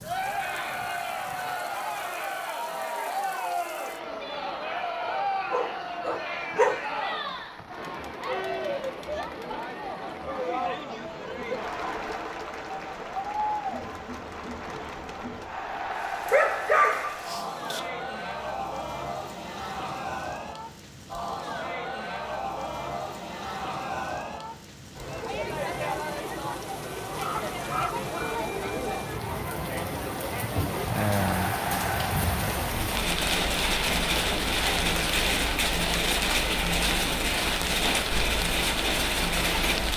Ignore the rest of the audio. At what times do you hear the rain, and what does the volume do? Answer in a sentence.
You can hear the rain from 0.0 to 39.9 s, getting louder.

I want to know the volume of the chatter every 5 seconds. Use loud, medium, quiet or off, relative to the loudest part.
loud, loud, loud, loud, loud, loud, loud, medium.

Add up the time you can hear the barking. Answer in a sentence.
The barking can be heard for 5 seconds in total.